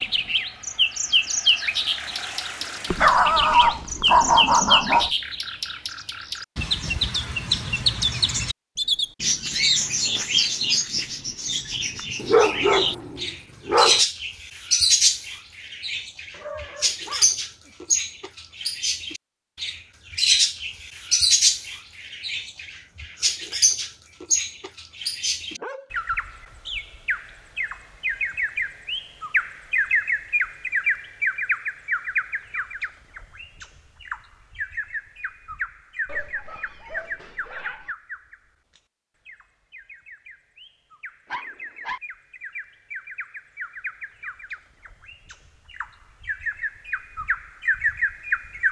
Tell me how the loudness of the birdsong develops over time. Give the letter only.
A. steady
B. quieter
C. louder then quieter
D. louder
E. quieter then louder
B.